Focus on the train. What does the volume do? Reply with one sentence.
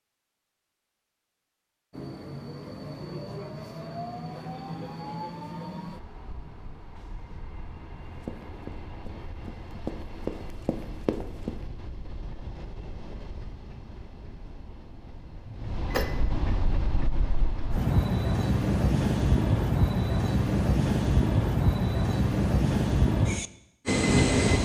The loudness of the train goes down, then up.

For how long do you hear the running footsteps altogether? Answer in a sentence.
The running footsteps can be heard for 3 seconds in total.